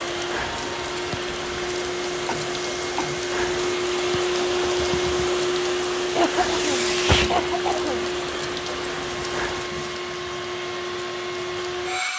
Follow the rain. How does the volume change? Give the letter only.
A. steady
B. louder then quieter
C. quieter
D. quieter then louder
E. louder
A.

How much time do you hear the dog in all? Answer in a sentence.
The dog can't be heard in this clip.